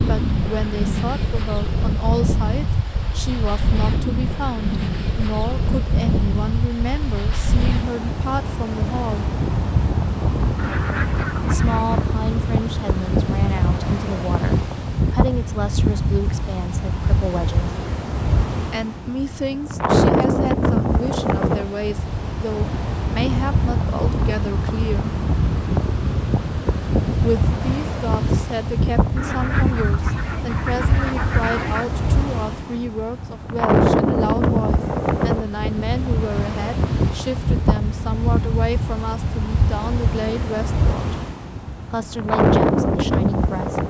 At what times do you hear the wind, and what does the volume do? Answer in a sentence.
You can hear the wind from 0.0 to 43.8 s, at a steady volume.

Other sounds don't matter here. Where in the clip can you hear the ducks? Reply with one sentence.
You can hear the ducks from 10.6 to 12.1 s and from 29.1 to 31.9 s.